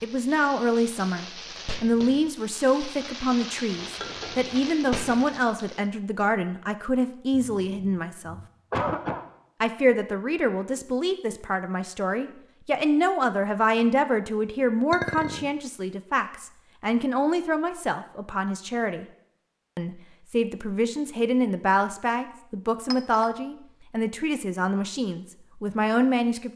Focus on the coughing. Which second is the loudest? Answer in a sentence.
The loudest moment of the coughing is at 9 seconds.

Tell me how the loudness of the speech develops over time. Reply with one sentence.
The volume of the speech stays about the same.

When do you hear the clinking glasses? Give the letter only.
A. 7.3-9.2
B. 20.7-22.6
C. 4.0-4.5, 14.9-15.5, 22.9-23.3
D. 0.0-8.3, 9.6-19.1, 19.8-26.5
C.